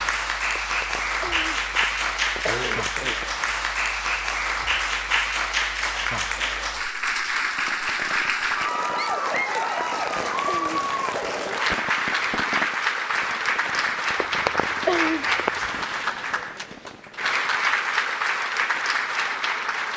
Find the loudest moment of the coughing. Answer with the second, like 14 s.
15 s.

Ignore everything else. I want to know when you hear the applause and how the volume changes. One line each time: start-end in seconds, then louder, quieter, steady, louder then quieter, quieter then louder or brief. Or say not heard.
0.0-19.9 steady.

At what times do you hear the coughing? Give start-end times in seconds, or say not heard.
0.6-3.2, 9.8-11.3, 14.2-15.7.